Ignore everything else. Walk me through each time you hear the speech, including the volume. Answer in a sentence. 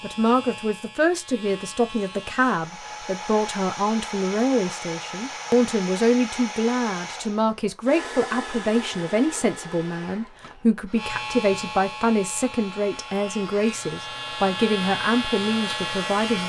You can hear the speech from 0.0 to 16.4 s, at a steady volume.